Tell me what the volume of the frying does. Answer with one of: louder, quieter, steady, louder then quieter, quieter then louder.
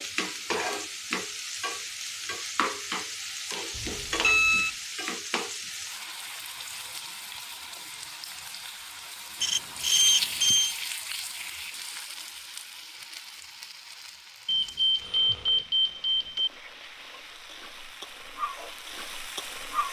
quieter.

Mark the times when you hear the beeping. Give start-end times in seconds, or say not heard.
3.8-4.7, 9.4-10.8, 14.4-16.5.